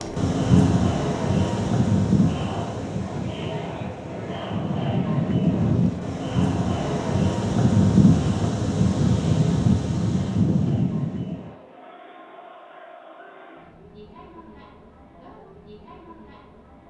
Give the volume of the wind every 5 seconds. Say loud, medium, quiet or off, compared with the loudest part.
loud, loud, loud, off.